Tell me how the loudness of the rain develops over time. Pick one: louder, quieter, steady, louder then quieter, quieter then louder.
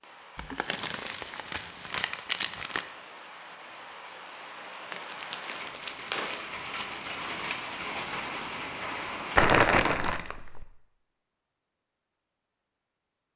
louder.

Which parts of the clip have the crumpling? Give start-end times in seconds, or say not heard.
0.3-2.9, 4.9-6.5, 9.3-10.7.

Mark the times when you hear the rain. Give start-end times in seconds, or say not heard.
0.0-9.4.